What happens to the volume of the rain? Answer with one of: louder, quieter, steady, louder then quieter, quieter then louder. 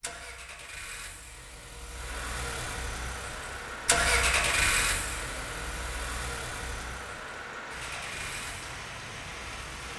steady.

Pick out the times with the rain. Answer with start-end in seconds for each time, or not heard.
1.9-9.9.